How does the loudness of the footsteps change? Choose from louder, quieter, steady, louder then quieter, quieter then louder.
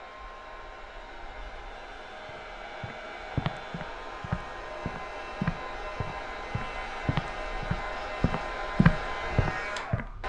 louder.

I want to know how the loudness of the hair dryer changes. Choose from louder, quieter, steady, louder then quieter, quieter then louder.
louder.